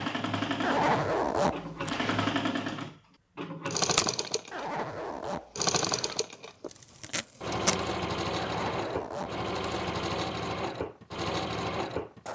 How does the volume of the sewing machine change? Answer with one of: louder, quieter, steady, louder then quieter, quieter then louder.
steady.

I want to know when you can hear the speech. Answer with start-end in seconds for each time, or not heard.
not heard.